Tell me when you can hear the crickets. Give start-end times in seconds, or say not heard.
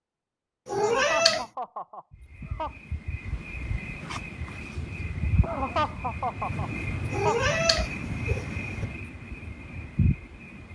2.1-10.7.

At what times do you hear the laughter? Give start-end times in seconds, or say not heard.
0.8-2.7, 5.4-7.5.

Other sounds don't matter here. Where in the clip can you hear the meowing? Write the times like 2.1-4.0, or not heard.
0.7-1.4, 7.1-8.8.